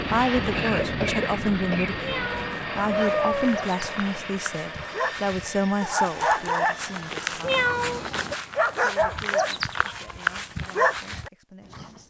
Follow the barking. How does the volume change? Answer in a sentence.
The volume of the barking goes up.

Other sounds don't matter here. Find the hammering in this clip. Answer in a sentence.
You can't hear the hammering here.